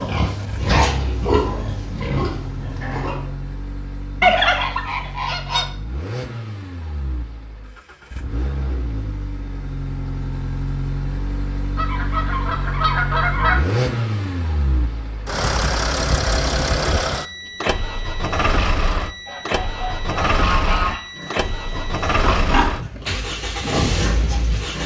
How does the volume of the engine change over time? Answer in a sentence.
The loudness of the engine goes up.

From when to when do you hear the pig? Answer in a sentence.
The pig can be heard from 0.0 to 3.3 s and from 21.1 to 24.8 s.